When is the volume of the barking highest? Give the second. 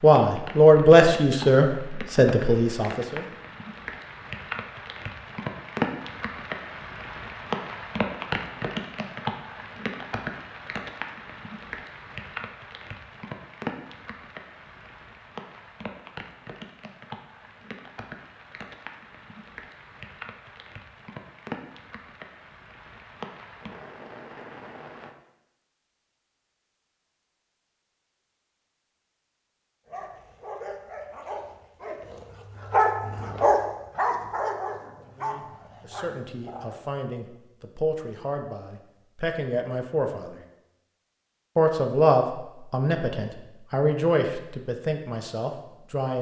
33 s.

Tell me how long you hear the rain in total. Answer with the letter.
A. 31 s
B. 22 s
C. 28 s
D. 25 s
D.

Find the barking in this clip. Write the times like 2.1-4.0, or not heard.
29.9-36.8.